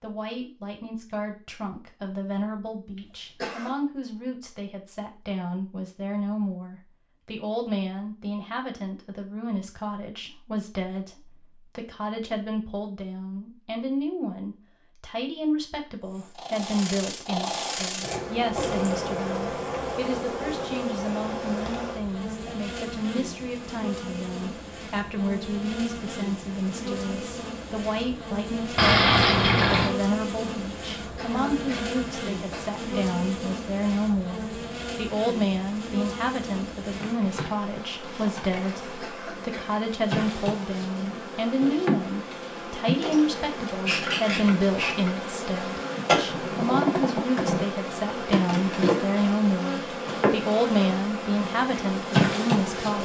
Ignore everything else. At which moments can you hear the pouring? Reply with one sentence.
You can hear the pouring from 28.8 to 29.9 s.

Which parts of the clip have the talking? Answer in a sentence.
You can hear the talking from 0.0 to 53.0 s.